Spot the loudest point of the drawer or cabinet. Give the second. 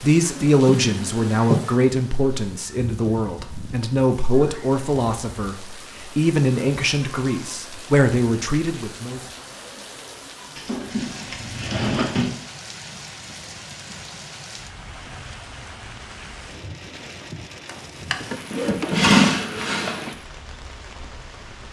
19 s.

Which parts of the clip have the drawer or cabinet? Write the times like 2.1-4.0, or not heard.
0.3-1.6, 10.6-12.3, 17.6-20.1.